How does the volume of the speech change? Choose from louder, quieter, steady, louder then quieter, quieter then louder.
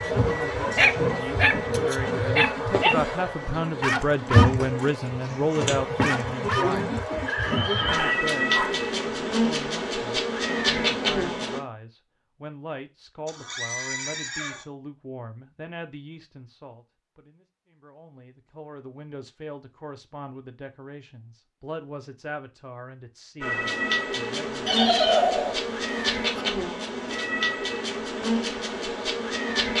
quieter.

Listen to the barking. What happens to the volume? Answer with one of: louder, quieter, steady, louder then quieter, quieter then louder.
quieter.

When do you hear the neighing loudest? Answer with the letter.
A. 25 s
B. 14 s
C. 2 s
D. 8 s
A.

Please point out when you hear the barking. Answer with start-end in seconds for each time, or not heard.
0.0-8.9.